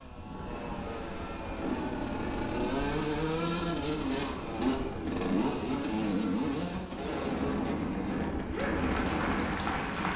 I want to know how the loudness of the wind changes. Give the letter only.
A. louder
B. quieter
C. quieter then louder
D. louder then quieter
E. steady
A.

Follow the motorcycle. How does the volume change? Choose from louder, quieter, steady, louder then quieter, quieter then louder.
louder then quieter.